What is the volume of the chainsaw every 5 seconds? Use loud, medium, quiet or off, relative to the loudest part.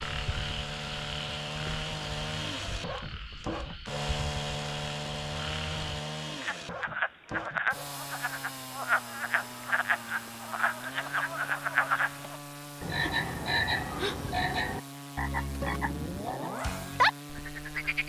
loud, loud, medium, medium.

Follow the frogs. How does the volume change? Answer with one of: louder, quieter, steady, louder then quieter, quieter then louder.
louder.